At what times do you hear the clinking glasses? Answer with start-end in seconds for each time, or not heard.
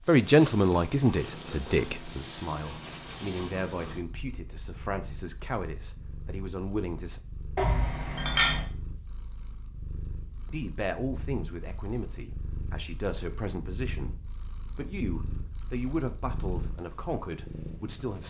7.5-8.7.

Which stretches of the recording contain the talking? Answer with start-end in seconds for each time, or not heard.
0.1-7.2, 10.4-18.2.